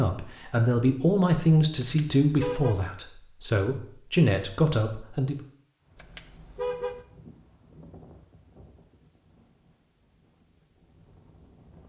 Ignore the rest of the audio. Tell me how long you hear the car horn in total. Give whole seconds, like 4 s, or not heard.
2 s.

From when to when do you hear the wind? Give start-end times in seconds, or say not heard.
5.8-11.8.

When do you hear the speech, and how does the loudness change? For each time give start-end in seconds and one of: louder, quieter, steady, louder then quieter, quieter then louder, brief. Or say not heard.
0.0-5.3 quieter then louder.